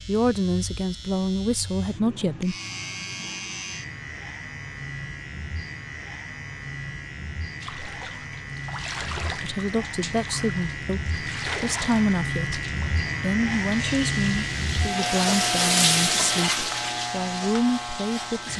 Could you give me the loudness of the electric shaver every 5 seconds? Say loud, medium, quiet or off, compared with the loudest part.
medium, medium, loud, loud.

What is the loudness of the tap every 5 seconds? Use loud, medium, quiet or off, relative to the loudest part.
off, medium, medium, loud.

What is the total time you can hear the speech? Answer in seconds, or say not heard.
11 s.